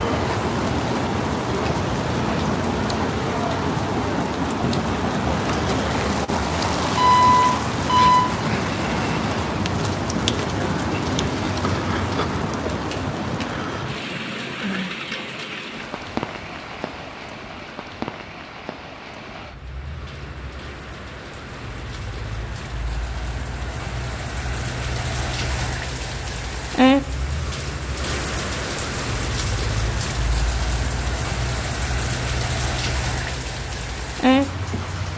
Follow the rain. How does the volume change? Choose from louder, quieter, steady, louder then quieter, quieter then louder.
quieter then louder.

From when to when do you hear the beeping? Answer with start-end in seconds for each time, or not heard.
7.0-8.2.